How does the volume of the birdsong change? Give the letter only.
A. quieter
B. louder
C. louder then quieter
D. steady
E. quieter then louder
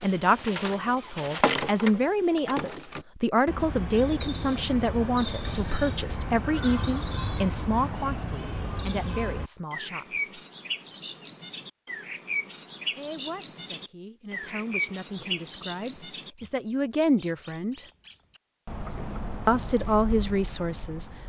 A.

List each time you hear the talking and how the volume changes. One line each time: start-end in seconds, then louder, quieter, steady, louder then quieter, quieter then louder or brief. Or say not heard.
0.0-10.4 quieter
12.9-17.9 louder
19.4-21.1 brief.